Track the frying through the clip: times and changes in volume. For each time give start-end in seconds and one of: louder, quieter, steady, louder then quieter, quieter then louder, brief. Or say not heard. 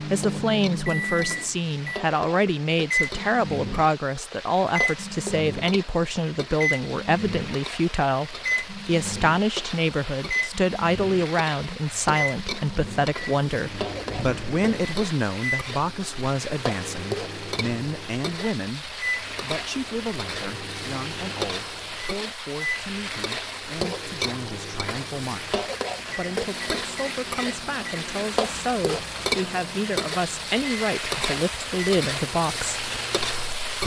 0.0-33.8 louder.